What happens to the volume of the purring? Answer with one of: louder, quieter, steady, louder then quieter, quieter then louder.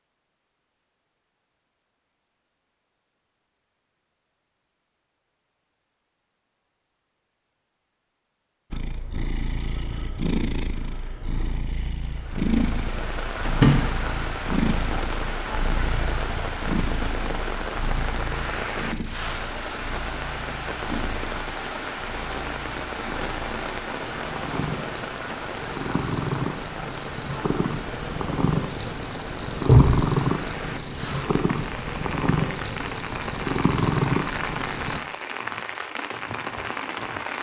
quieter then louder.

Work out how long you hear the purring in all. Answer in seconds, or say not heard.
26 s.